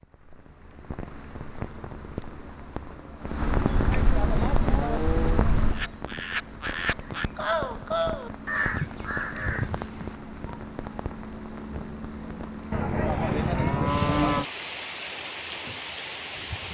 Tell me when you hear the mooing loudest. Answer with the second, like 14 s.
14 s.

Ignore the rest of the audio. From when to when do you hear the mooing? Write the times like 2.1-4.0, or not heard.
3.8-5.5, 12.7-14.4.